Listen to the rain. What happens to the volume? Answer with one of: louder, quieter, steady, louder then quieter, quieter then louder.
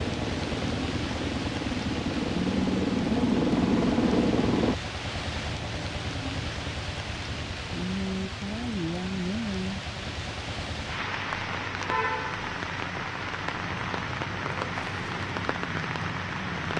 steady.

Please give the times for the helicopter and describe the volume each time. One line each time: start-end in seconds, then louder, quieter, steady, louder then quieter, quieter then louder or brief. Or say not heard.
0.0-4.8 louder.